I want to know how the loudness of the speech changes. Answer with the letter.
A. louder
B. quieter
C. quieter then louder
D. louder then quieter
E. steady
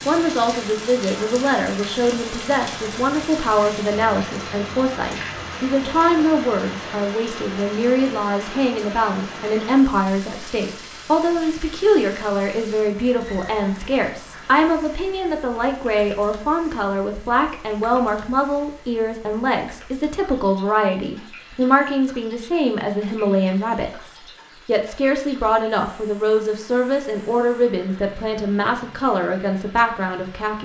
E.